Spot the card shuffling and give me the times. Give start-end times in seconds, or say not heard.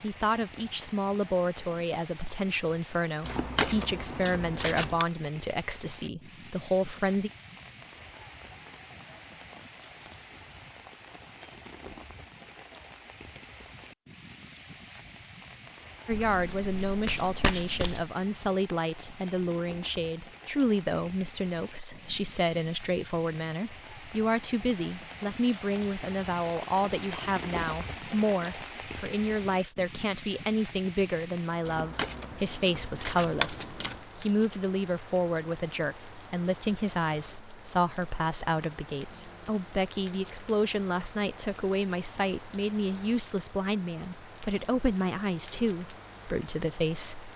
3.2-5.0, 16.1-18.1, 31.6-34.0.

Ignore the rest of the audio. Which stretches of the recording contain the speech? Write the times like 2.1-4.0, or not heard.
0.0-7.3, 16.1-47.3.